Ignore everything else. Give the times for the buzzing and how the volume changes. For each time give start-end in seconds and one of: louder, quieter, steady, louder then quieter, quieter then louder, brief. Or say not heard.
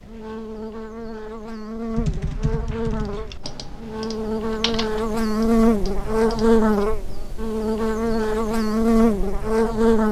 0.0-10.0 louder.